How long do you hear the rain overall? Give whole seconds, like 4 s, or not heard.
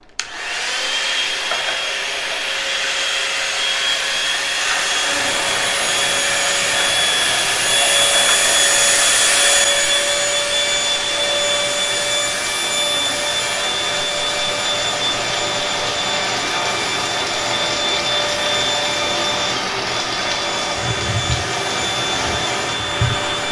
19 s.